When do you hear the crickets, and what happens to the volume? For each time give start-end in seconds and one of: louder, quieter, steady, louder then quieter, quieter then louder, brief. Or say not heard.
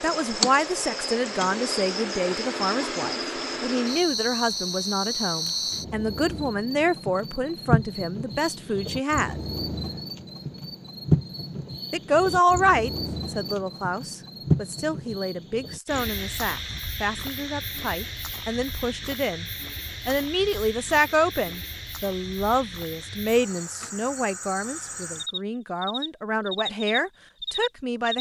0.0-28.1 quieter.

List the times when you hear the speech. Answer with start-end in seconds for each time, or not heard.
0.0-9.3, 11.9-19.4, 20.1-28.1.